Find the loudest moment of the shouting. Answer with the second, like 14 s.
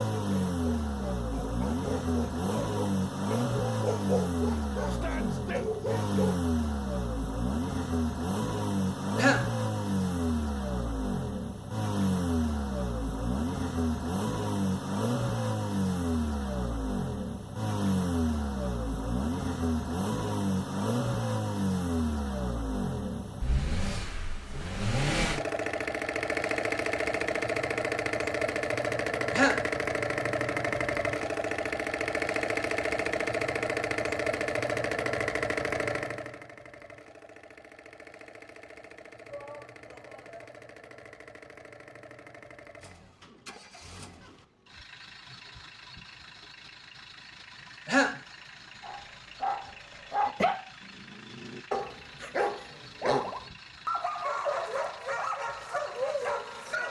5 s.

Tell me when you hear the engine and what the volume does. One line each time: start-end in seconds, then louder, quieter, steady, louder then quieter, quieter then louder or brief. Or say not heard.
0.0-56.8 quieter.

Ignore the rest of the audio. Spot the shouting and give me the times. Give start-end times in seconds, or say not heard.
4.8-5.7, 39.2-40.5.